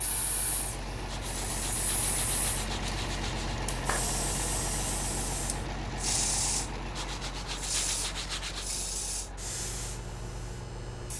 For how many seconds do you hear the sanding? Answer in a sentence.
You can hear the sanding for 4 seconds altogether.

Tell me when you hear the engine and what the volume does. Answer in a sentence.
The engine can be heard from 0.0 to 11.1 s, getting quieter.